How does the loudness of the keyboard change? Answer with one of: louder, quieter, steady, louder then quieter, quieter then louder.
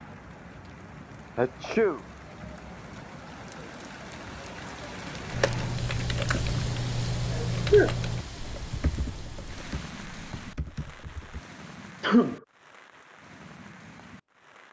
quieter.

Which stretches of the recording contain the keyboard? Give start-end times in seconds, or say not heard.
5.3-11.4.